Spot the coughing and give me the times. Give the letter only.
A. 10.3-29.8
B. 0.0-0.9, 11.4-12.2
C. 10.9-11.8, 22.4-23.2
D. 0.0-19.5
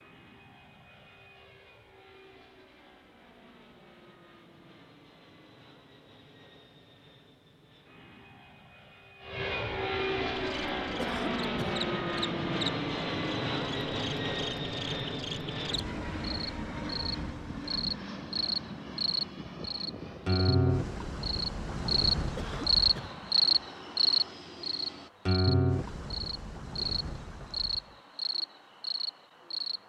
C.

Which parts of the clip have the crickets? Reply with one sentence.
The crickets can be heard from 10.3 to 29.8 s.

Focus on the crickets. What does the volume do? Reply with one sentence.
The volume of the crickets goes up, then down.